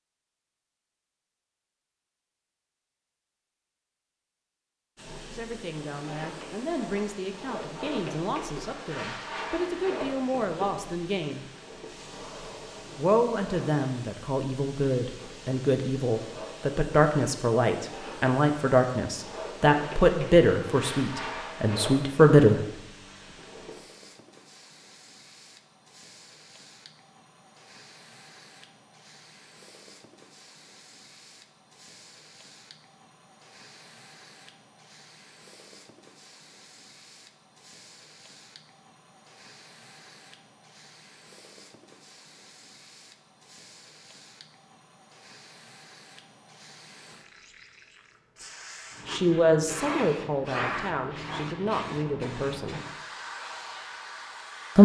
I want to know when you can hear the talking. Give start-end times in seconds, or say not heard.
5.2-11.4, 12.9-22.6, 49.0-52.8.